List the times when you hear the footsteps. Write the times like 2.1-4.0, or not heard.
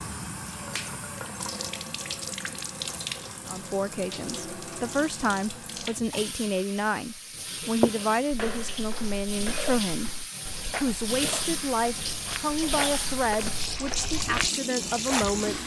7.8-15.4.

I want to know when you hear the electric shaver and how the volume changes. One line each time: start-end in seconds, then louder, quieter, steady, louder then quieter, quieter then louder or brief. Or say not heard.
not heard.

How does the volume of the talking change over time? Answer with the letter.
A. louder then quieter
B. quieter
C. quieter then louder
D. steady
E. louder
D.